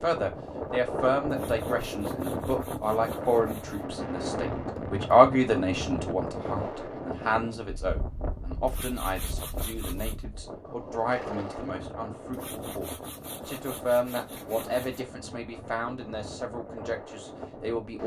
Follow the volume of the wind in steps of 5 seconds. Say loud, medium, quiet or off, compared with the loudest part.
loud, loud, medium, medium.